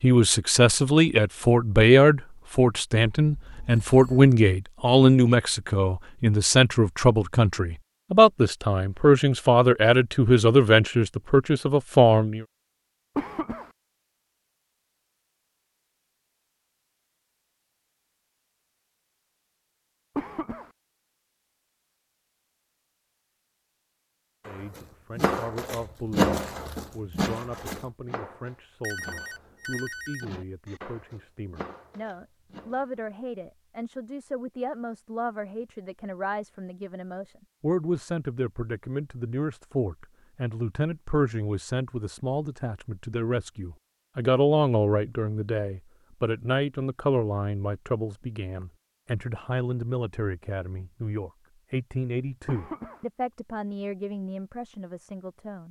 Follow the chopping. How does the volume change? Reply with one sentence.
The loudness of the chopping goes down.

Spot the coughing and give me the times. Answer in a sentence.
You can hear the coughing from 13.2 to 13.7 s, from 20.1 to 20.7 s and from 52.5 to 53.0 s.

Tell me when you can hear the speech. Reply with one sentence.
The speech can be heard from 0.0 to 12.4 s and from 24.4 to 55.6 s.